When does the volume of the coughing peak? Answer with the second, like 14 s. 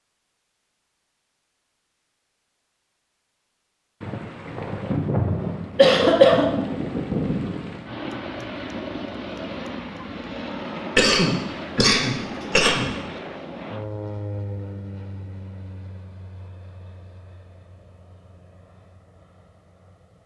6 s.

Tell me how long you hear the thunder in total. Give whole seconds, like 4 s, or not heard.
4 s.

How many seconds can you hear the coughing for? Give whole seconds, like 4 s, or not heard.
3 s.